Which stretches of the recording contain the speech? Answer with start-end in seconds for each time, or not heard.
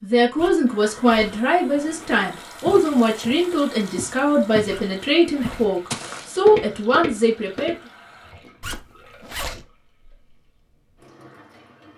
0.0-7.8.